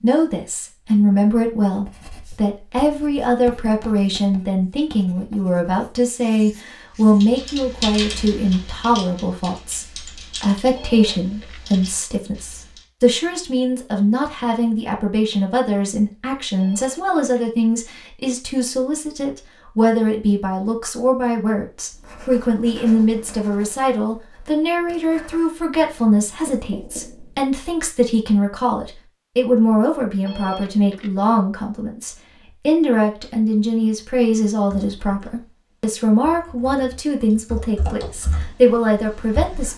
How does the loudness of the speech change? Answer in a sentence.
The loudness of the speech stays about the same.